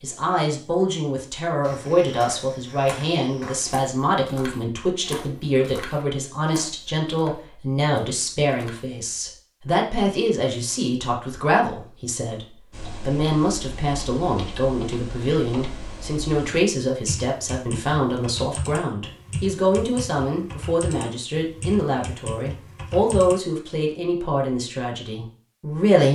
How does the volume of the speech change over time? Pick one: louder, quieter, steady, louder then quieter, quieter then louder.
steady.